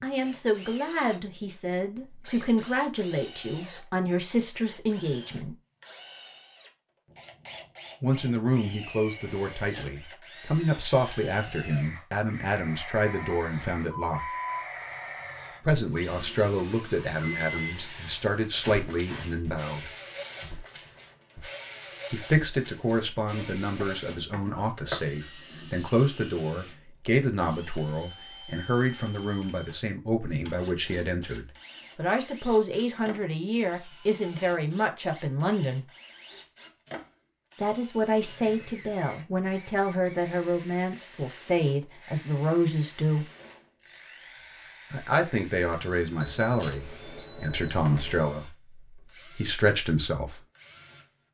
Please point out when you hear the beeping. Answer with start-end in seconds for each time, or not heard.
13.2-14.7, 17.2-17.7, 46.2-48.1.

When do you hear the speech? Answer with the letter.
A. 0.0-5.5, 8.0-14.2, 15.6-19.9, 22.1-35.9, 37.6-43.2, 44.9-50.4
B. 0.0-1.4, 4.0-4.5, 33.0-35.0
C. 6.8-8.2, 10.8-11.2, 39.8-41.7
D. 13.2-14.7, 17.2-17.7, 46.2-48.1
A.